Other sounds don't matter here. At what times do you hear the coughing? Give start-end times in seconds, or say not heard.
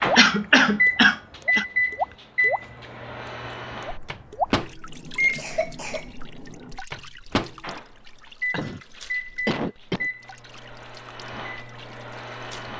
0.1-1.6, 5.3-6.0, 8.5-10.1.